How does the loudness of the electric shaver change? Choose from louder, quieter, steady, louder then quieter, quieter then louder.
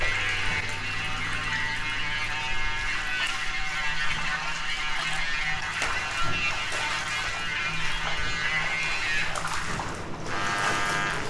steady.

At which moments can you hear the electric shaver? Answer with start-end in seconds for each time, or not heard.
0.0-11.2.